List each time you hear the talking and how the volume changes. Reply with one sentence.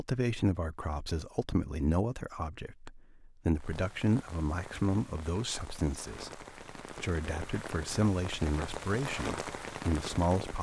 You can hear the talking from 0.0 to 10.5 s, at a steady volume.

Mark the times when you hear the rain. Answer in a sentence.
The rain can be heard from 3.5 to 10.5 s.